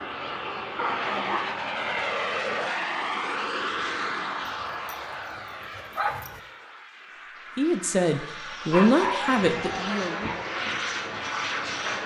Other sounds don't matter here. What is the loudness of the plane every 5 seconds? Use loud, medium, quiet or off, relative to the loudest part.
loud, medium, loud.